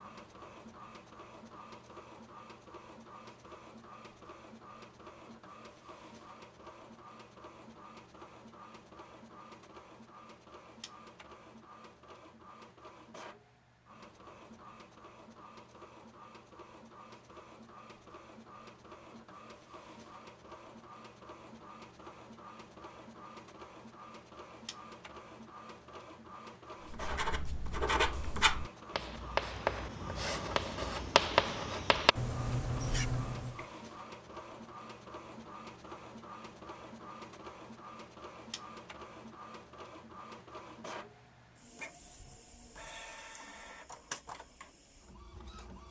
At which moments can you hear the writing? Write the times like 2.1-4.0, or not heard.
26.9-33.6.